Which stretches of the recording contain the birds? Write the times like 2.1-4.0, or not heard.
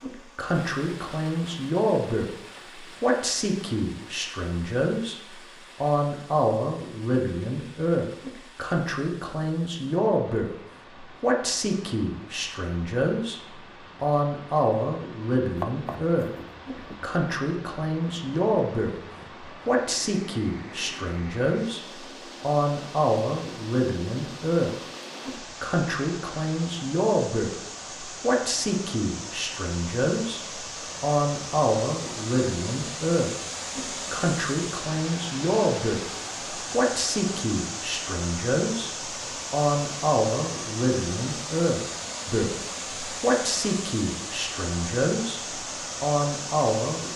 not heard.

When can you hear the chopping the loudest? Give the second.
16 s.